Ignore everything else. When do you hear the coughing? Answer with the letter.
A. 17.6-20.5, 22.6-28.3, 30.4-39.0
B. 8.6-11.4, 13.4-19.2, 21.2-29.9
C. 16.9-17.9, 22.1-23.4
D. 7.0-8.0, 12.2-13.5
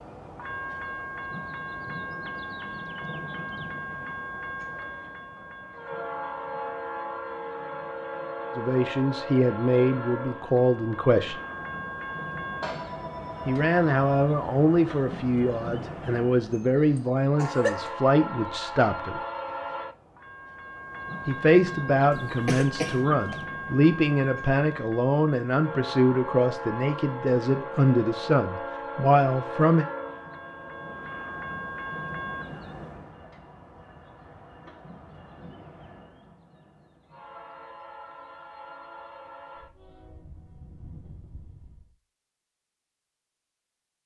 C.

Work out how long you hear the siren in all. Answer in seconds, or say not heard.
not heard.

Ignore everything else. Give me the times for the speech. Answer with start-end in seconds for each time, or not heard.
8.6-11.4, 13.4-19.2, 21.2-29.9.